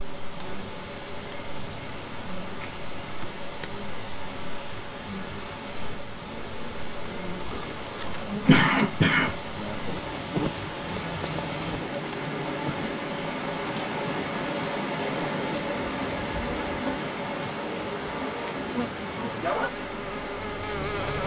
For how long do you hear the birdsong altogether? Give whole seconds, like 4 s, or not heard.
not heard.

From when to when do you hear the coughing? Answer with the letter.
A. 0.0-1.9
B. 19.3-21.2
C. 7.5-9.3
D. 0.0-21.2
C.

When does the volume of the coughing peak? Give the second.
9 s.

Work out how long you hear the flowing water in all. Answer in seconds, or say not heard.
21 s.